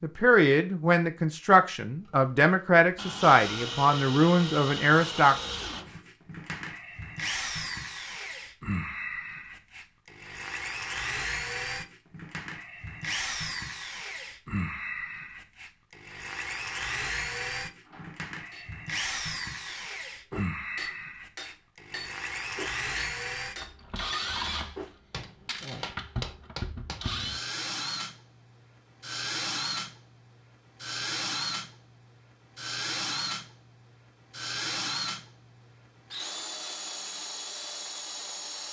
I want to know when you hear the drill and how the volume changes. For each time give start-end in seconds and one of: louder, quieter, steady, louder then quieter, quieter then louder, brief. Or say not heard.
2.0-38.6 steady.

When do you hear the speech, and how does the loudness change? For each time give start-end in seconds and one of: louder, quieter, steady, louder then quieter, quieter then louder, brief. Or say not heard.
0.0-5.3 steady.